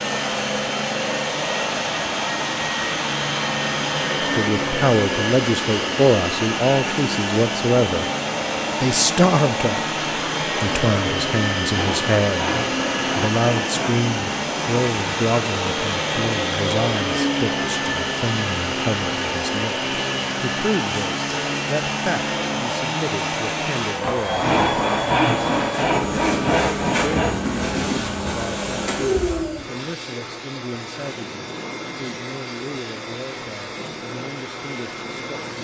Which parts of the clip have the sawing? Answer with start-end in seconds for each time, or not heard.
11.7-14.1, 24.4-27.4.